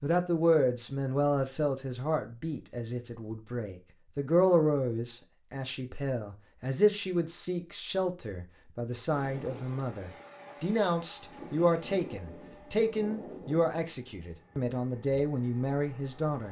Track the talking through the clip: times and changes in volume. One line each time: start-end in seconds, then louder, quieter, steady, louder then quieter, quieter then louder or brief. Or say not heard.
0.0-16.4 steady.